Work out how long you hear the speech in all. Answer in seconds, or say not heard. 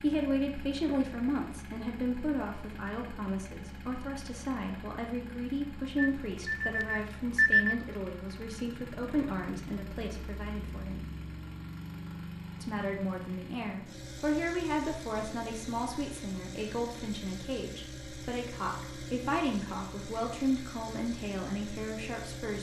21 s.